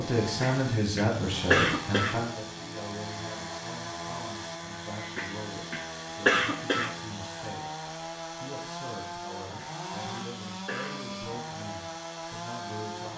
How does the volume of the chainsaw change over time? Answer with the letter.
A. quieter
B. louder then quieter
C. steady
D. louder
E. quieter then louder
C.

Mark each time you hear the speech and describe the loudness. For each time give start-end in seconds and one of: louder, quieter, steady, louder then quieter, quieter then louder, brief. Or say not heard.
0.0-13.1 quieter.